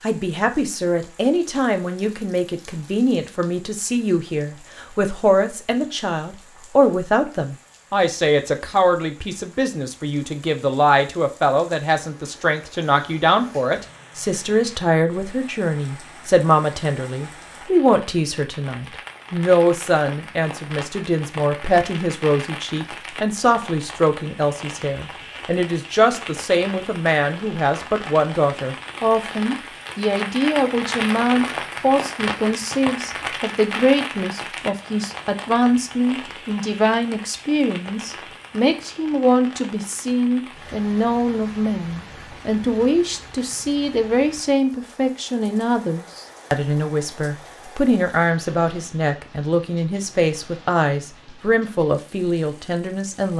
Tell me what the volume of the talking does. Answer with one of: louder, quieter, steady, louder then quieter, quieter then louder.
steady.